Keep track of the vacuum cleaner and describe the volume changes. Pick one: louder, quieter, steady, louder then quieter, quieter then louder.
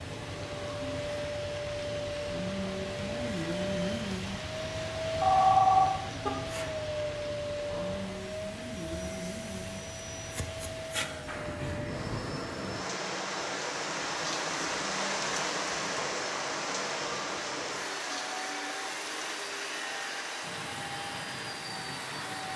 steady.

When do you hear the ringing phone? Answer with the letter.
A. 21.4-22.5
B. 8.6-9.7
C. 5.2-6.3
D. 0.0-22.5
C.